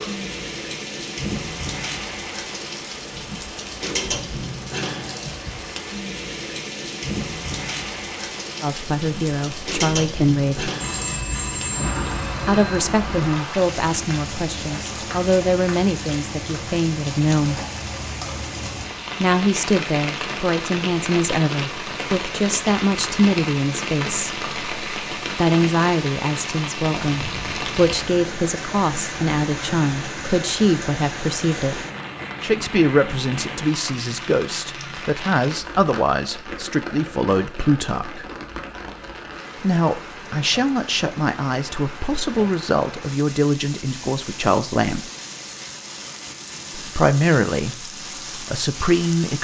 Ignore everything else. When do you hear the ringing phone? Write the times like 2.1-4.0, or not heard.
10.8-12.8.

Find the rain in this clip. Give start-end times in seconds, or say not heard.
0.0-49.3.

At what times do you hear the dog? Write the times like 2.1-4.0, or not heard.
not heard.